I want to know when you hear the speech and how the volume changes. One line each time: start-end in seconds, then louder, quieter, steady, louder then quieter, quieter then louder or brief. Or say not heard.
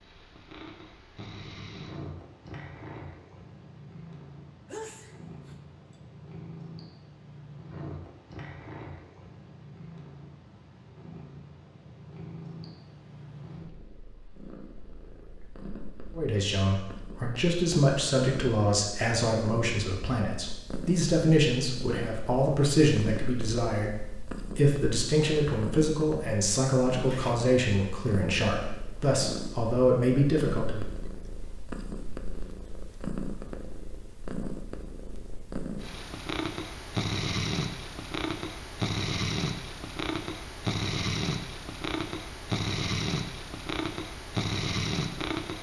16.1-30.9 steady.